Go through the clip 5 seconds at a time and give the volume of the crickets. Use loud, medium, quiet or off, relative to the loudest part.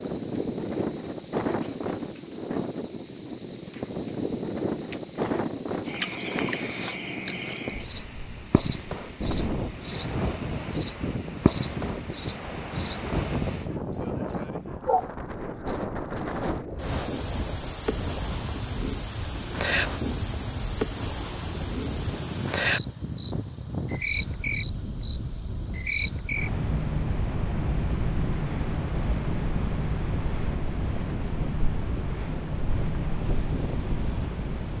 loud, loud, loud, loud, loud, loud, medium.